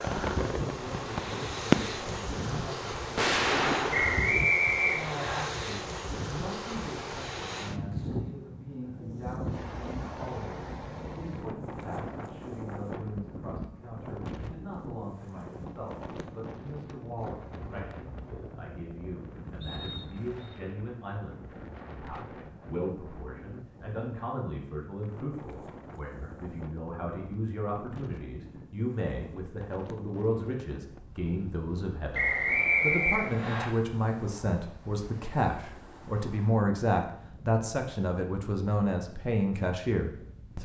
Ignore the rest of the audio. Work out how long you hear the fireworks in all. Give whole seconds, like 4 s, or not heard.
3 s.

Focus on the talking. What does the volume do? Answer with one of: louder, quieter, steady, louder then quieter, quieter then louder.
louder.